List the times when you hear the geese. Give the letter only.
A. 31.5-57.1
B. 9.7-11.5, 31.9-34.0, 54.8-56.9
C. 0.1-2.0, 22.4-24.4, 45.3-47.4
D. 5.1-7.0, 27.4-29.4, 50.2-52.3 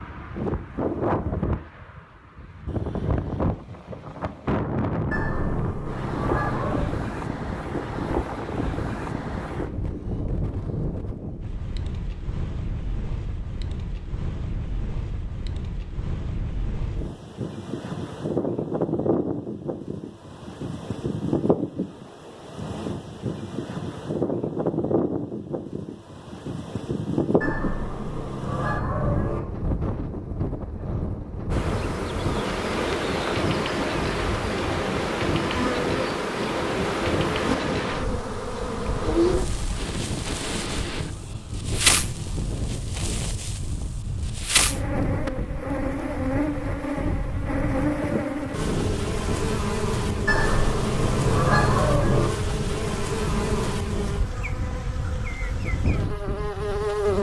D.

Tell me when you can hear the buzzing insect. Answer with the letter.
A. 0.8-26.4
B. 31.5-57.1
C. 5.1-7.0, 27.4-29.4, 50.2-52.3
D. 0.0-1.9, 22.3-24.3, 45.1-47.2
B.